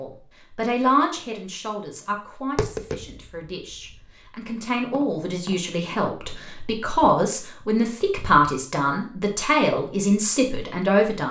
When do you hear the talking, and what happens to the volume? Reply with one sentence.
You can hear the talking from 0.0 to 11.2 s, getting quieter then louder.